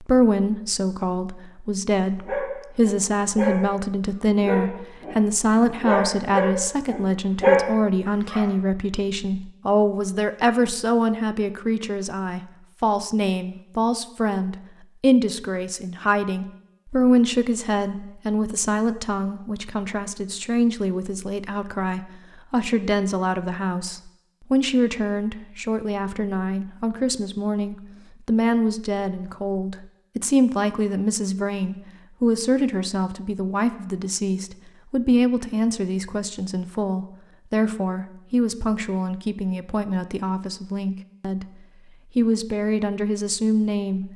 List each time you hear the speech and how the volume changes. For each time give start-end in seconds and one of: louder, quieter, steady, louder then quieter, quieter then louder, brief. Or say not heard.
0.0-41.5 steady
42.1-44.1 brief.